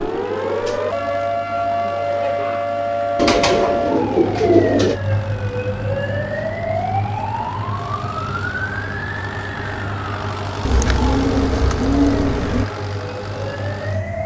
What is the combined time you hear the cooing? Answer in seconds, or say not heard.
4 s.